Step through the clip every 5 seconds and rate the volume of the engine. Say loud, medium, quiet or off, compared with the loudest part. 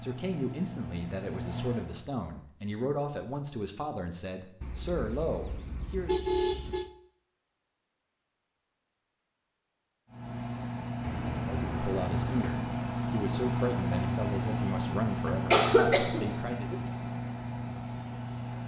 medium, off, loud, loud.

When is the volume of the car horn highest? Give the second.
6 s.